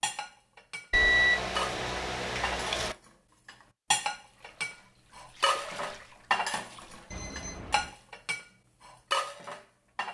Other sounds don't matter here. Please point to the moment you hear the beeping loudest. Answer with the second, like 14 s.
1 s.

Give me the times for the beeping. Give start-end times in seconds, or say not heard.
0.9-3.0, 7.1-8.0.